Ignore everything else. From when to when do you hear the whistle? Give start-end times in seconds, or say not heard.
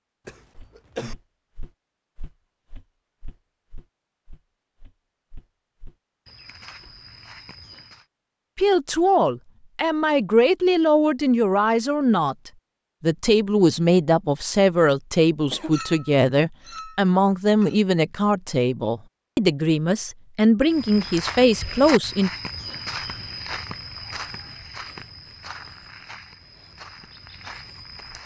not heard.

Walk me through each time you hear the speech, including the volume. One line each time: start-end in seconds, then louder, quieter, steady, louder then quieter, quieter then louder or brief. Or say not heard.
8.6-22.3 steady.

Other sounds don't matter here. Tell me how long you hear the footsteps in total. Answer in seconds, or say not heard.
15 s.